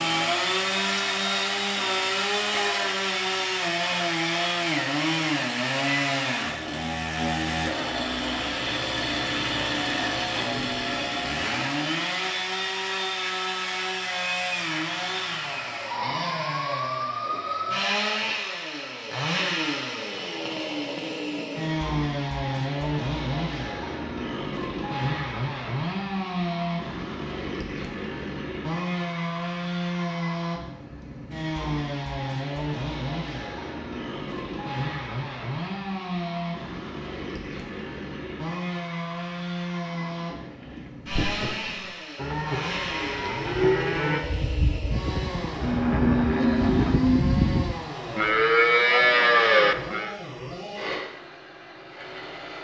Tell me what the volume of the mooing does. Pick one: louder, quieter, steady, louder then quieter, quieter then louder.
louder.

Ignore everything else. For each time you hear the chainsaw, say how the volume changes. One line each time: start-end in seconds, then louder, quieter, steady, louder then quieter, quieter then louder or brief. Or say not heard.
0.0-52.6 quieter.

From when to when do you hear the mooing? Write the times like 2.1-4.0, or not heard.
39.9-50.1.